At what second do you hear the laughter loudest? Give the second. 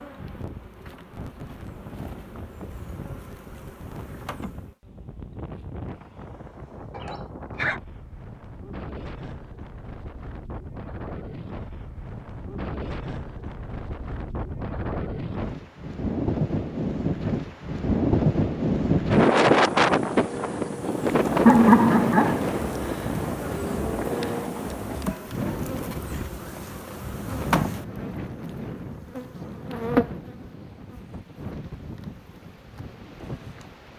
22 s.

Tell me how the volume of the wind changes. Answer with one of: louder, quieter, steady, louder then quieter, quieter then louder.
louder then quieter.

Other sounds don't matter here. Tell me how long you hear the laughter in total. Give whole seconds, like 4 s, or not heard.
2 s.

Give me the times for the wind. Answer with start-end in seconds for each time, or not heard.
0.0-33.9.